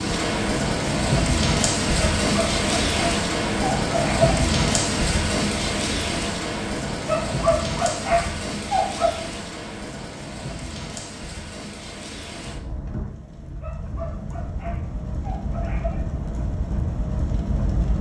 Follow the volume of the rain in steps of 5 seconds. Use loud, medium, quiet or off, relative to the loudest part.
loud, medium, quiet, medium.